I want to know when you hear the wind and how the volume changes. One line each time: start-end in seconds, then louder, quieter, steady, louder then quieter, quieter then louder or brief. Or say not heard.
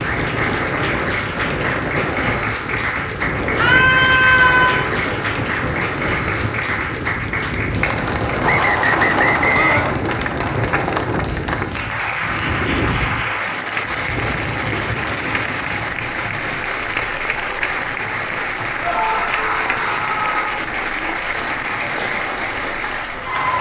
0.0-23.5 quieter.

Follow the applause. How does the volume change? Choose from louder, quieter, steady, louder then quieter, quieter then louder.
steady.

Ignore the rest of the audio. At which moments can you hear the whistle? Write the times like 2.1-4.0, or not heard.
8.4-9.9.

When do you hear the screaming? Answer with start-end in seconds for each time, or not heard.
3.5-4.8, 9.5-9.9, 18.8-20.6.